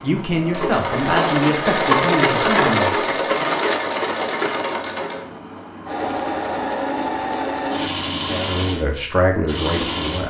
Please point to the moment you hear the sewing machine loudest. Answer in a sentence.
The volume of the sewing machine peaks at 2 seconds.